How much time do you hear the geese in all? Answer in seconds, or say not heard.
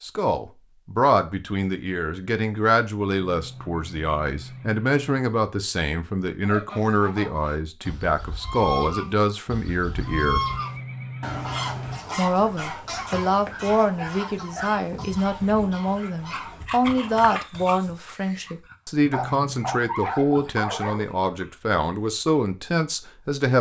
11 s.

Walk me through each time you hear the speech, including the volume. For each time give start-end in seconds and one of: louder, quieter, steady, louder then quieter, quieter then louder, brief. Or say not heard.
0.0-10.4 steady
12.2-23.5 steady.